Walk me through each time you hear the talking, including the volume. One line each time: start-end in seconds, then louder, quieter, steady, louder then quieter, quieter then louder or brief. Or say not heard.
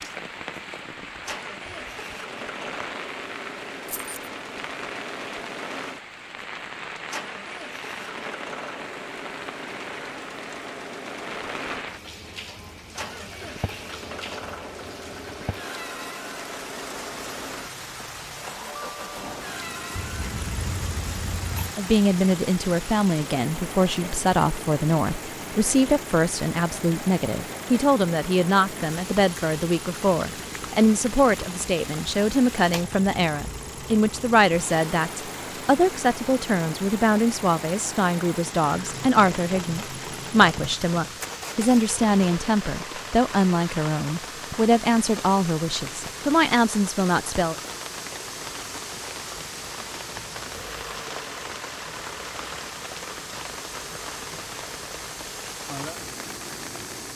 21.8-47.5 steady.